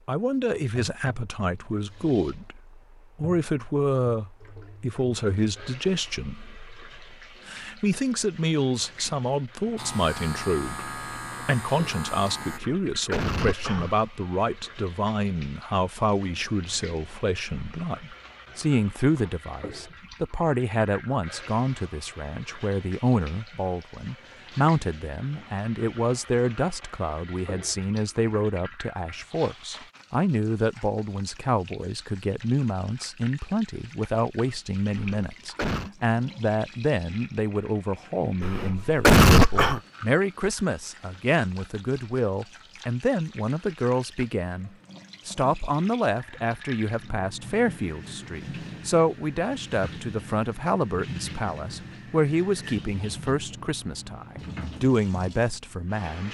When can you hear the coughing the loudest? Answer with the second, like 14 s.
39 s.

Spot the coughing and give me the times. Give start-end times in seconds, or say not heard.
12.5-14.0, 35.0-35.9, 38.4-39.8.